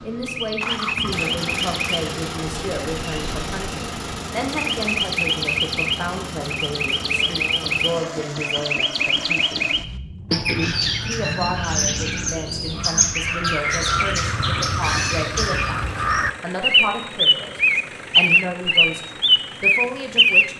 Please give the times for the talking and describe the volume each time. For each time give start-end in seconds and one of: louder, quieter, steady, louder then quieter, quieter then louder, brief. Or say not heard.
0.0-9.7 steady
11.0-20.5 steady.